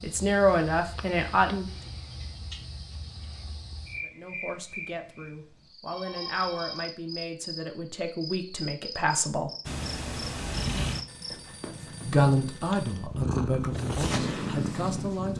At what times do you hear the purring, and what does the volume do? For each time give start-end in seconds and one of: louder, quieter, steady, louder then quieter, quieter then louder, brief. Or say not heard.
9.7-15.3 quieter then louder.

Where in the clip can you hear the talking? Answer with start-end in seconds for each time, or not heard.
0.0-1.6, 4.0-9.5, 12.1-15.3.